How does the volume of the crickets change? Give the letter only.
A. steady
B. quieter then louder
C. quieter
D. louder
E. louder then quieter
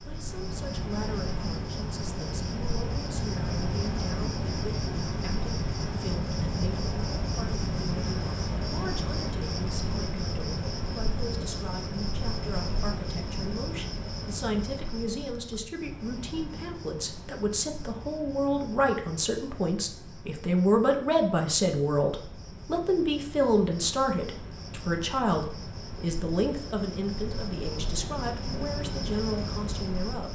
B.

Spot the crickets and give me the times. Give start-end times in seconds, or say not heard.
0.0-30.2.